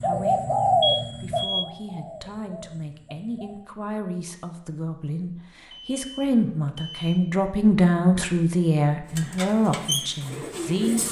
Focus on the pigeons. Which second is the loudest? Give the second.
1 s.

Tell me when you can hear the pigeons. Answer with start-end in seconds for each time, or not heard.
0.0-3.6, 9.1-11.0.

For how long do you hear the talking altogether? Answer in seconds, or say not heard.
11 s.